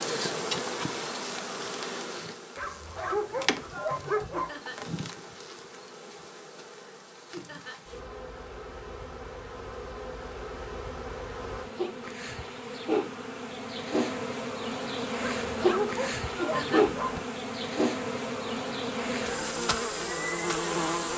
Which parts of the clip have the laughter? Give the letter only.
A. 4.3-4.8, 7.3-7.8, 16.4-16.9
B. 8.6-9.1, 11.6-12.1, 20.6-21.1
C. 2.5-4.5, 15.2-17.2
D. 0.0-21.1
A.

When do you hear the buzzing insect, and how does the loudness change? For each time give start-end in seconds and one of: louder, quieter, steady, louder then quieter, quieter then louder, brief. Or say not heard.
0.0-21.1 quieter then louder.